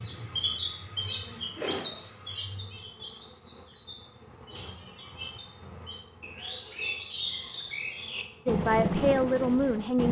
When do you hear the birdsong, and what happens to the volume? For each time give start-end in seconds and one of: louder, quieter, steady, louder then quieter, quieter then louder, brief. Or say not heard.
0.0-10.0 quieter then louder.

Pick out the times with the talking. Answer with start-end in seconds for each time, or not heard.
8.4-10.0.